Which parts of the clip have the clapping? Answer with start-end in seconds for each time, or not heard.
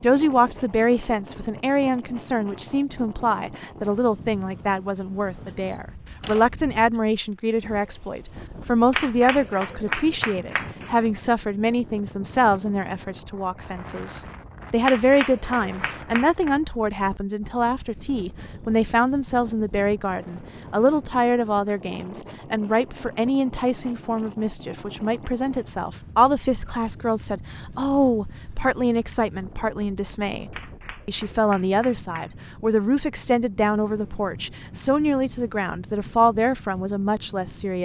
8.9-10.9, 14.8-16.5, 30.5-32.5.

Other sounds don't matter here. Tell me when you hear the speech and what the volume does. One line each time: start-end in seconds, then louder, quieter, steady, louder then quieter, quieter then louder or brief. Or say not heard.
0.0-37.8 steady.